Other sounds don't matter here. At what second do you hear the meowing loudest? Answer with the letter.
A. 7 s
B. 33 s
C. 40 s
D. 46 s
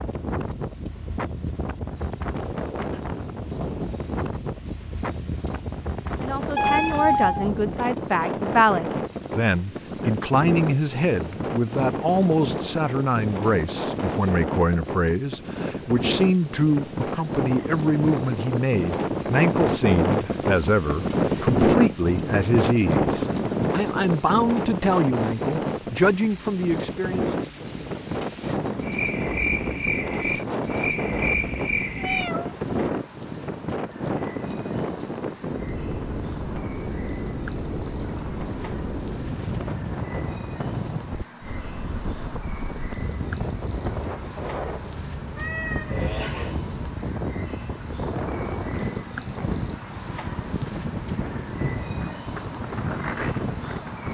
A.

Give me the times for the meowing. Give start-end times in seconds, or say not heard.
6.5-7.5, 31.9-32.5, 45.4-46.6.